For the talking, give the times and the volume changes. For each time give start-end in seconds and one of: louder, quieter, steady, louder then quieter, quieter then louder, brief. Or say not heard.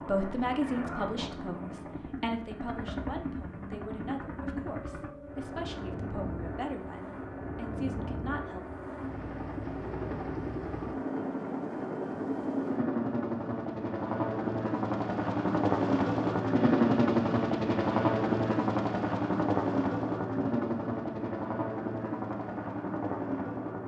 0.0-8.6 quieter.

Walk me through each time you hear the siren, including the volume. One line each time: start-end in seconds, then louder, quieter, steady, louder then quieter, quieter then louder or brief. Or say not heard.
not heard.